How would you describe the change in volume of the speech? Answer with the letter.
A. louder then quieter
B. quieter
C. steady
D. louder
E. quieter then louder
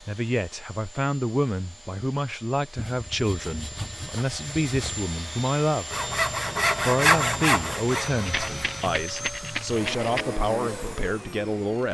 C.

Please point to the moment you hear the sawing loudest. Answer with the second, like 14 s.
7 s.